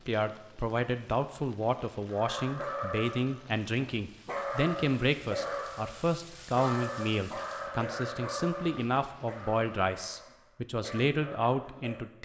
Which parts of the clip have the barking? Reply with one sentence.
You can hear the barking from 2.0 to 12.0 s.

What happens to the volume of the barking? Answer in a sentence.
The loudness of the barking goes down.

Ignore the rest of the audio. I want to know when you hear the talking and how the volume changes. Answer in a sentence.
You can hear the talking from 0.1 to 12.2 s, at a steady volume.